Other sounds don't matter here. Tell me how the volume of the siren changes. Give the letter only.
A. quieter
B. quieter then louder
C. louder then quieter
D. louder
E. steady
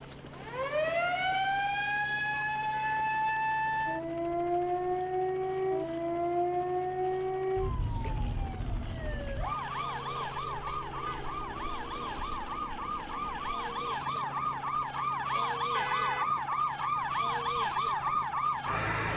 B.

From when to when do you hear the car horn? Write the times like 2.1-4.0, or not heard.
2.3-3.0, 10.7-11.2, 15.3-16.3.